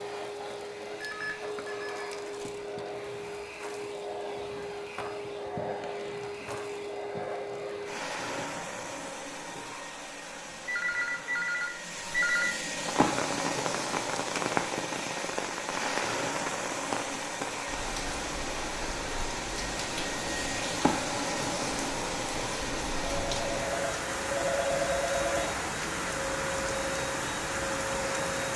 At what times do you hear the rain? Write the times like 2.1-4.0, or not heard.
12.7-28.5.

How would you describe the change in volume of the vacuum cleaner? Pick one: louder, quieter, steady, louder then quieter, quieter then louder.
steady.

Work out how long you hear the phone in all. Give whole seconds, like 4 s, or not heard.
6 s.